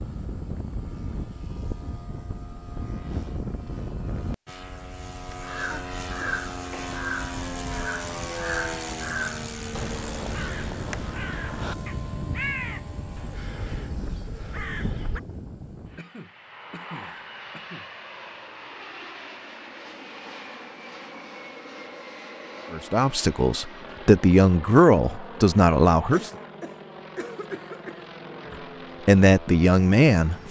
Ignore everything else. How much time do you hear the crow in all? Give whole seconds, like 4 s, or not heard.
10 s.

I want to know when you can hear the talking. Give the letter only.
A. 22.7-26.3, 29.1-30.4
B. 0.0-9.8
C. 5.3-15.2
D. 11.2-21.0
A.